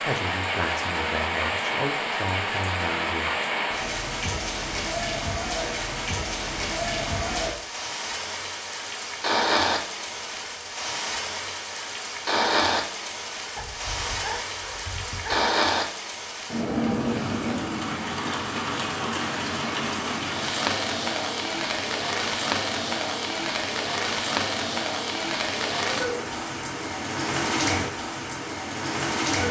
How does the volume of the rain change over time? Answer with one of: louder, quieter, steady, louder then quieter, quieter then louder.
steady.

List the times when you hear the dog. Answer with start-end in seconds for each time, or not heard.
13.6-15.5.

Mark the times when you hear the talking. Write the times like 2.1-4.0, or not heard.
0.0-3.4.